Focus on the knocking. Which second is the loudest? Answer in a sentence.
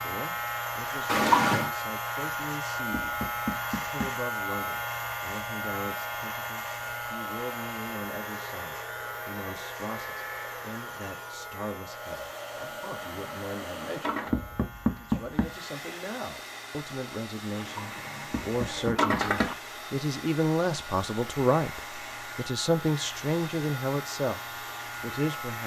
The loudest moment of the knocking is at 15 seconds.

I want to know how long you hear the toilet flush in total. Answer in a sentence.
You can hear the toilet flush for 4 seconds altogether.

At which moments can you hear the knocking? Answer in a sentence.
The knocking can be heard from 2.9 to 4.2 s, from 14.3 to 15.6 s and from 18.3 to 19.6 s.